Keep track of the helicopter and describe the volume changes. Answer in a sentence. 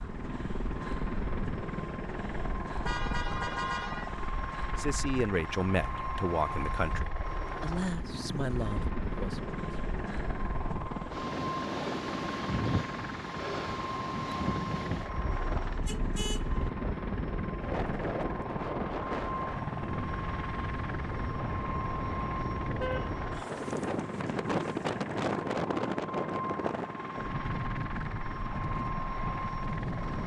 The loudness of the helicopter stays about the same.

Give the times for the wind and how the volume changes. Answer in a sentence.
You can hear the wind from 0.0 to 30.2 s, getting louder.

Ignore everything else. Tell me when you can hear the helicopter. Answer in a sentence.
You can hear the helicopter from 0.0 to 30.2 s.